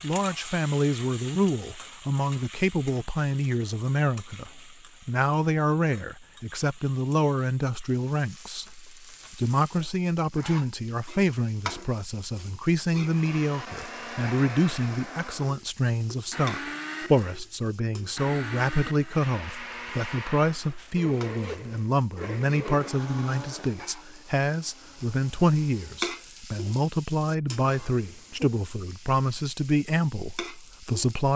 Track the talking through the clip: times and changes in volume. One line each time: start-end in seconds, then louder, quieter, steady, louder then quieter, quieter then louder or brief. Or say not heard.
0.0-31.3 steady.